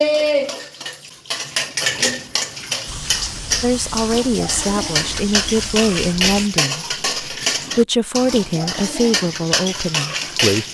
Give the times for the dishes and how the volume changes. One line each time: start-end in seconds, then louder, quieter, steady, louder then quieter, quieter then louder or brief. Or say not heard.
0.0-10.7 steady.